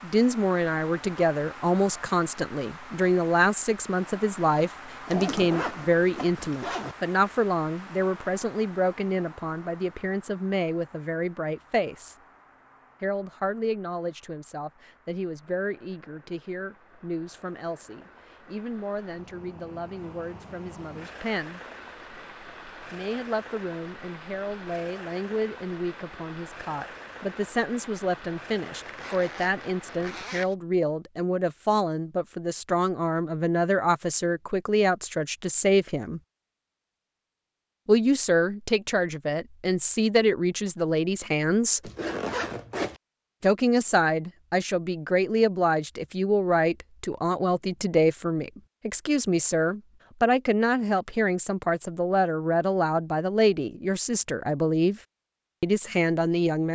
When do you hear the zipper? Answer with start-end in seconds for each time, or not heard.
5.0-7.0, 28.9-30.6, 41.8-43.0.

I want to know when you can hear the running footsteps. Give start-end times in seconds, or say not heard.
not heard.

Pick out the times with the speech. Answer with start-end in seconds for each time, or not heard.
0.0-12.2, 13.0-21.6, 22.9-36.2, 37.9-41.9, 43.4-55.0, 55.6-56.6.